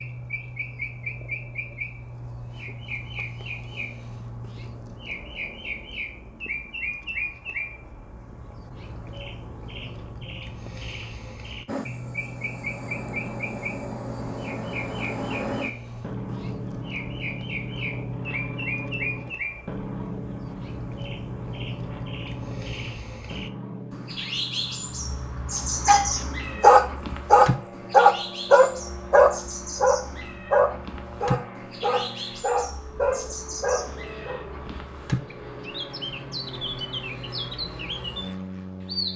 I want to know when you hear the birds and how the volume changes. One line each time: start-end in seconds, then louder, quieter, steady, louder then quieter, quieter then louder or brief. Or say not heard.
0.0-39.1 steady.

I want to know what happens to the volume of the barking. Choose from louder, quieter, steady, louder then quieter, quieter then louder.
quieter.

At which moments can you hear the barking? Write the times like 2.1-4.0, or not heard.
25.9-34.4.